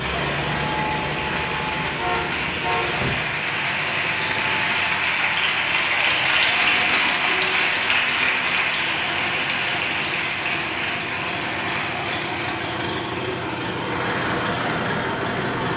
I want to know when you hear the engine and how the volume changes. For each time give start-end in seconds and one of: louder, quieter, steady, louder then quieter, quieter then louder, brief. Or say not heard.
0.0-15.7 quieter then louder.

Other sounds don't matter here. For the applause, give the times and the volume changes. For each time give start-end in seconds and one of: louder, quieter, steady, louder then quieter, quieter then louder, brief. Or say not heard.
0.0-15.7 louder then quieter.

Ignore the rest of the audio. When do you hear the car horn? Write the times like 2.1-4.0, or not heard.
1.9-3.0.